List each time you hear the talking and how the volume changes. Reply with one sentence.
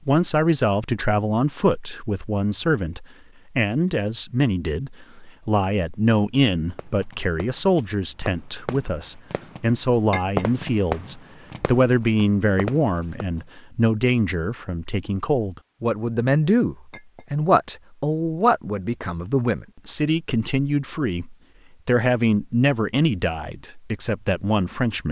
The talking can be heard from 0.1 to 25.0 s, at a steady volume.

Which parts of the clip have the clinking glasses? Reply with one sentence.
You can hear the clinking glasses from 10.1 to 10.5 s and from 16.9 to 17.3 s.